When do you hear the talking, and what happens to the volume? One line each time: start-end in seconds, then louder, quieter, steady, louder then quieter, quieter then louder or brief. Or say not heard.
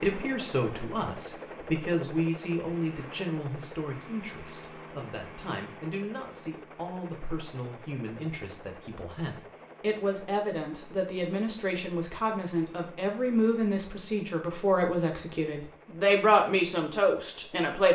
0.0-17.9 quieter then louder.